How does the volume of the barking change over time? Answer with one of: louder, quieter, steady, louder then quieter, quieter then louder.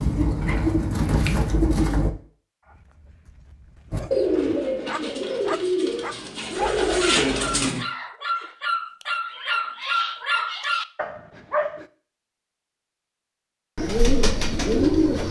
louder.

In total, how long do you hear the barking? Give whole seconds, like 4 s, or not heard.
9 s.